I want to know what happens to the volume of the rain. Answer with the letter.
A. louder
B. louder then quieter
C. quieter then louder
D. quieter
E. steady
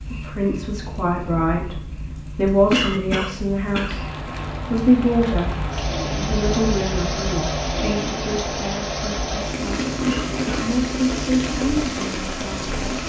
A.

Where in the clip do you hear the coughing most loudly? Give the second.
3 s.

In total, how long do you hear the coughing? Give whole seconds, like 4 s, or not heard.
2 s.